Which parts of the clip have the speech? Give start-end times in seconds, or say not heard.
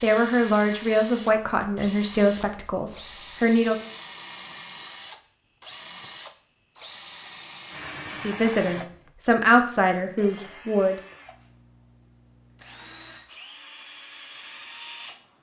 0.0-3.8, 8.2-10.9.